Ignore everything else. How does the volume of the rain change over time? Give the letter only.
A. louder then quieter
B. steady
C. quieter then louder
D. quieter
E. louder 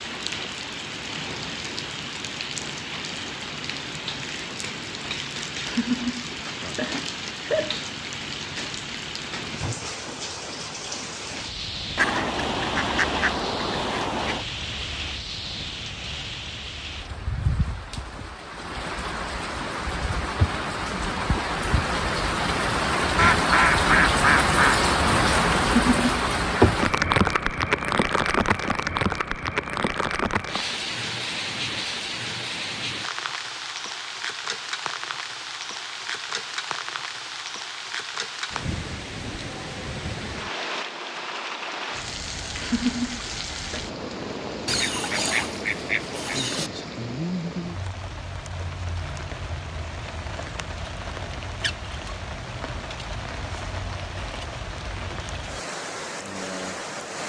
A.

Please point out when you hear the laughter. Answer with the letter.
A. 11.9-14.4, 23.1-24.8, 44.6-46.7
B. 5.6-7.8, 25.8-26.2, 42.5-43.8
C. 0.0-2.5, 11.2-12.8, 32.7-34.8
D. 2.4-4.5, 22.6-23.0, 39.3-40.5
B.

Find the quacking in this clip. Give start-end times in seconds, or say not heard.
11.9-14.4, 23.1-24.8, 44.6-46.7.